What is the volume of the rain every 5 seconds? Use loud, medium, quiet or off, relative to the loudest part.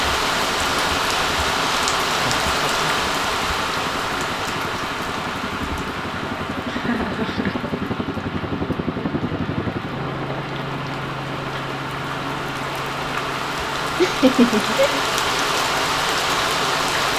loud, medium, medium, loud.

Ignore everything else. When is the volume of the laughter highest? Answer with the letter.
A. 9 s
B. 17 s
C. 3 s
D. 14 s
D.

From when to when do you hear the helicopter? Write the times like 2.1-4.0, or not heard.
0.0-17.1.